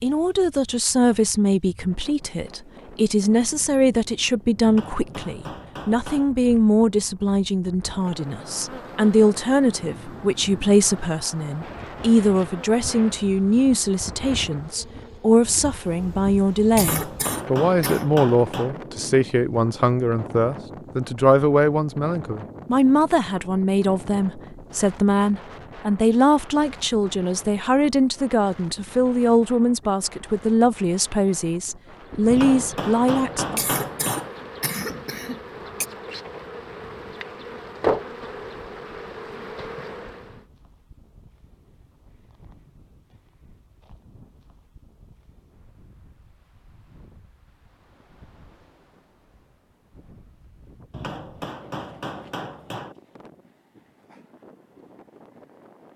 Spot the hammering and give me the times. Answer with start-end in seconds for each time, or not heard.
4.7-6.3, 16.8-18.8, 32.3-34.3, 50.9-53.0.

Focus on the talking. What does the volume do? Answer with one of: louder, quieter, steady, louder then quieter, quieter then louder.
steady.